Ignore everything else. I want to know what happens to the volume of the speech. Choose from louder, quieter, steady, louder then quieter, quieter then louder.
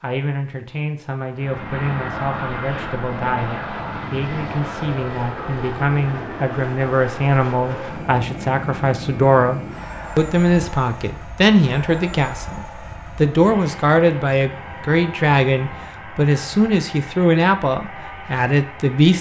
louder.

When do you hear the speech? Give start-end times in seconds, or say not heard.
0.0-19.1.